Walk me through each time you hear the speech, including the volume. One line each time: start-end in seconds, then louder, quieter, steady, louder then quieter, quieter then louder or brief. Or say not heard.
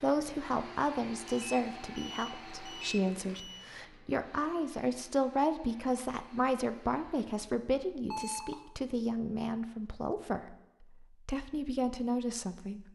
0.0-12.9 steady.